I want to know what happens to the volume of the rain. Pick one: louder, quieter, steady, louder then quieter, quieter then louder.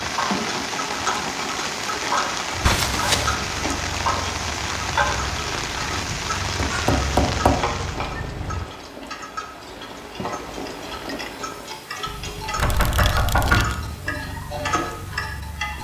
quieter.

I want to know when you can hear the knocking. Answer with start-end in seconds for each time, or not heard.
0.6-1.4, 6.5-7.7, 12.6-13.7.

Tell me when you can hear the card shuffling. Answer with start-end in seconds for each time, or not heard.
2.6-3.4, 12.4-13.8.